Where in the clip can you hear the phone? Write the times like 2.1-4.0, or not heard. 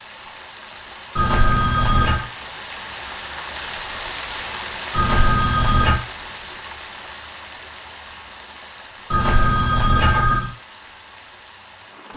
1.1-2.2, 4.9-6.0, 9.1-10.5.